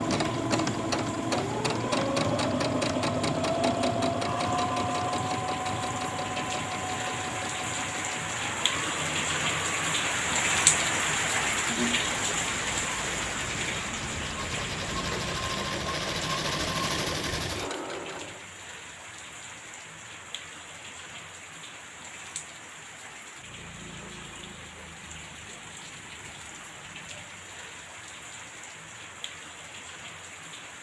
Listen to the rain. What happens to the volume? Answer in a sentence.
The volume of the rain goes up, then down.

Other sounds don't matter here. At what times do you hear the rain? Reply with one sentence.
The rain can be heard from 0.0 to 30.7 s.